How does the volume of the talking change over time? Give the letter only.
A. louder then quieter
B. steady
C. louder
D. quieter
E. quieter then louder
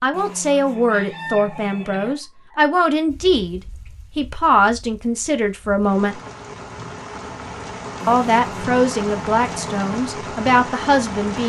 B.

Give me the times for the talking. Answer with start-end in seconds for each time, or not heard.
0.0-6.2, 8.1-11.4.